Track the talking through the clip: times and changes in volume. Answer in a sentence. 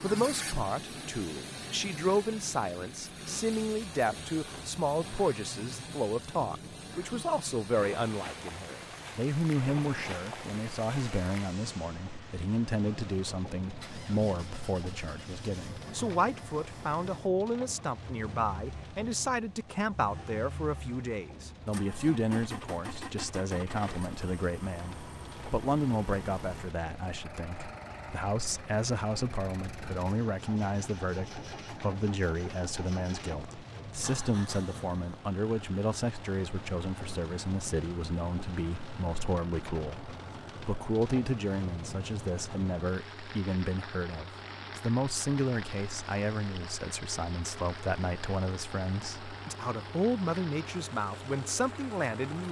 The talking can be heard from 0.0 to 52.4 s, at a steady volume.